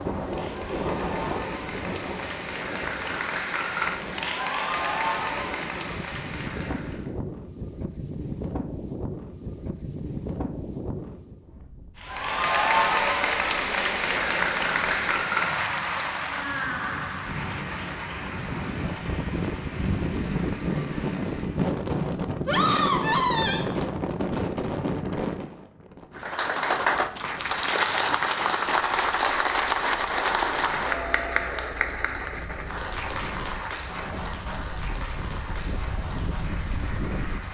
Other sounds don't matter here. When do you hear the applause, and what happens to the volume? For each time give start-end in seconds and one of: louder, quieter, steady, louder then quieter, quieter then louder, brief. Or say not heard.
0.0-7.1 louder then quieter
12.0-21.8 quieter
26.1-37.4 quieter.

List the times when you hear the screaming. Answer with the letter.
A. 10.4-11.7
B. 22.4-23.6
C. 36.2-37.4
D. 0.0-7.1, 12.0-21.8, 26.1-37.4
B.